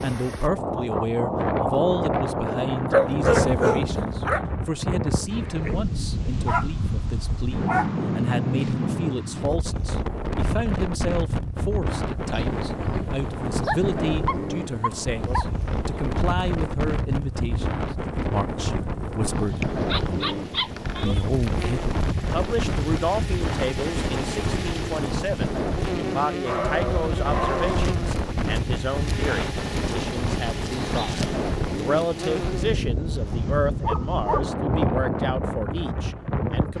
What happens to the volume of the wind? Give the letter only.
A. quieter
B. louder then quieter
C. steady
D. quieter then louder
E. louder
C.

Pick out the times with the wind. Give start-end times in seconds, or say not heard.
0.0-36.7.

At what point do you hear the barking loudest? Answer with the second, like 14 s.
3 s.